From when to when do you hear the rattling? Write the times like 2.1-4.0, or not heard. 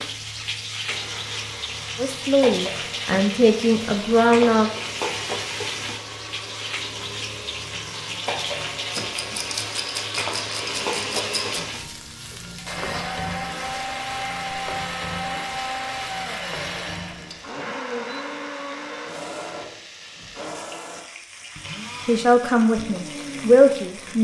8.9-11.6.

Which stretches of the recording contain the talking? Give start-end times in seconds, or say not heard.
1.9-4.7, 22.1-24.2.